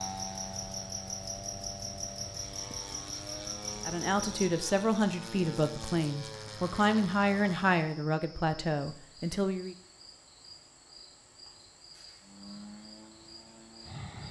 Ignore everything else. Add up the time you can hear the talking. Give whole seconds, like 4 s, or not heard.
6 s.